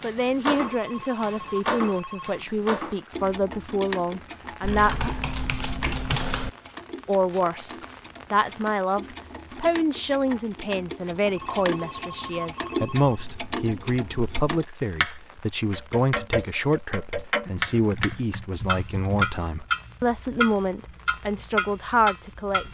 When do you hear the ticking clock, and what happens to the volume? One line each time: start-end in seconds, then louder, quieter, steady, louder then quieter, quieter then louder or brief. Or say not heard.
0.0-22.6 quieter then louder.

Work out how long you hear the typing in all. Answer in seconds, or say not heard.
4 s.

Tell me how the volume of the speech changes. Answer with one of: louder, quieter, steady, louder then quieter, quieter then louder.
steady.